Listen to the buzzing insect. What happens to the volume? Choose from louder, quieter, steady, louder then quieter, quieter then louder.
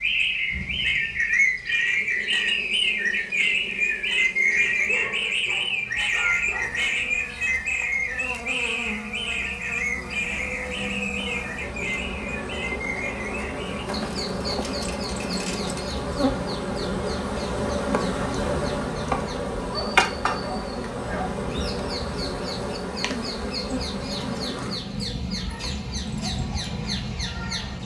louder then quieter.